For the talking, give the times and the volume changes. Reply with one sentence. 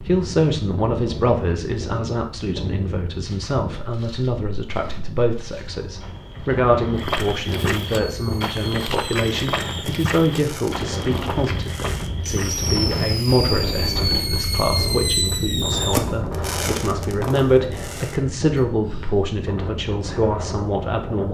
The talking can be heard from 0.0 to 21.3 s, at a steady volume.